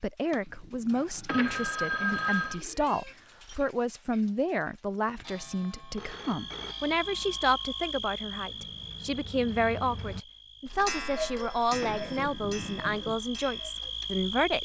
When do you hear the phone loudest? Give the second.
2 s.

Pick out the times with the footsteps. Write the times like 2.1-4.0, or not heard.
not heard.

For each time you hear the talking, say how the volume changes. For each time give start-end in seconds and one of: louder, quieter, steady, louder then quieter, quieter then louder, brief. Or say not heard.
0.0-14.6 steady.